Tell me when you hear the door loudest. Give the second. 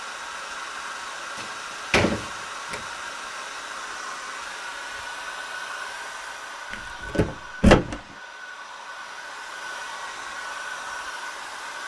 8 s.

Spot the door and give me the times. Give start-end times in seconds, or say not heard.
1.4-2.8, 6.7-8.0.